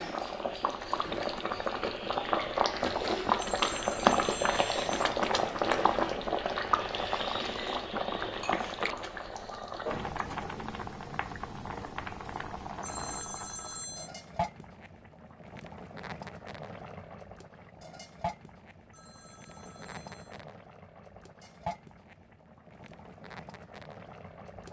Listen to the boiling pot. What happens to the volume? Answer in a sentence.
The loudness of the boiling pot goes down.